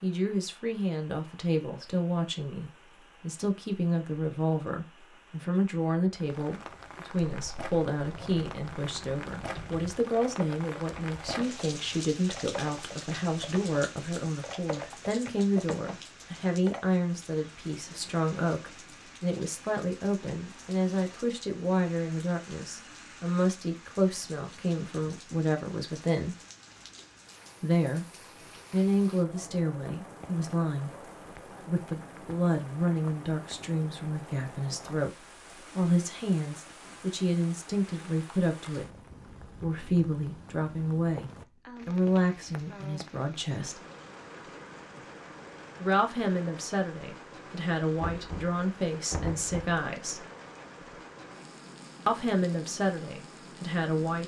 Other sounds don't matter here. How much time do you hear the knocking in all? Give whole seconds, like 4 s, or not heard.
2 s.